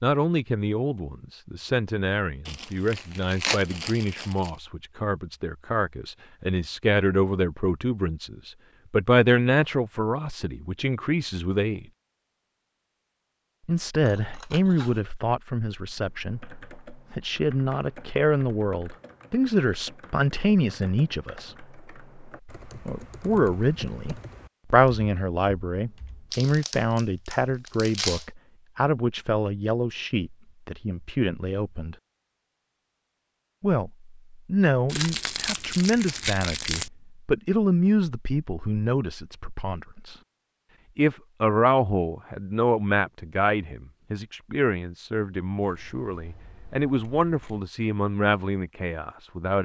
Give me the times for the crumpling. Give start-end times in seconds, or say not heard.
2.5-4.5, 26.3-28.2, 34.9-36.9.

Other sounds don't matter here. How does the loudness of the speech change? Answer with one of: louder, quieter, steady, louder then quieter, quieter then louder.
steady.